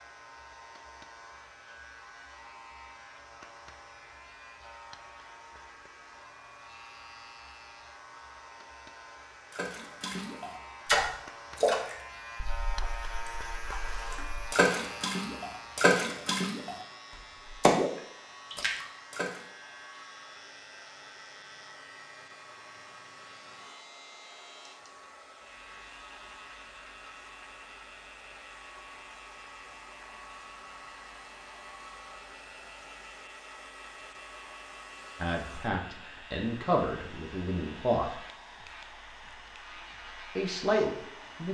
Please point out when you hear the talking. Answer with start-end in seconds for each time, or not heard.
35.2-38.2, 40.4-41.4.